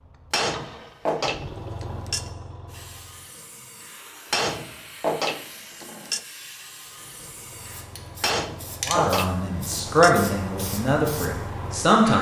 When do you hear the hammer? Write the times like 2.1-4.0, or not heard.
0.3-2.3, 4.3-6.2, 8.2-10.2.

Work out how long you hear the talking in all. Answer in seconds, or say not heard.
3 s.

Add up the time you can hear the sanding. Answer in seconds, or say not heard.
not heard.